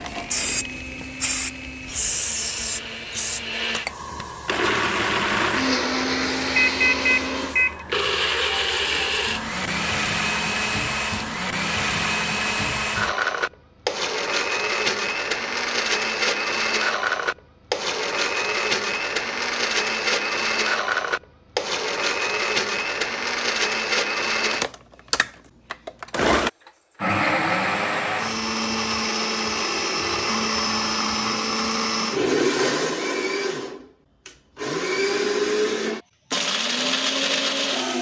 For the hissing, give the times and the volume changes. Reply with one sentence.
The hissing can be heard from 0.0 to 13.2 s, getting quieter.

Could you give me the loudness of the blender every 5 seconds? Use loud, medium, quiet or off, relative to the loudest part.
medium, loud, loud, loud, loud, loud, loud, loud.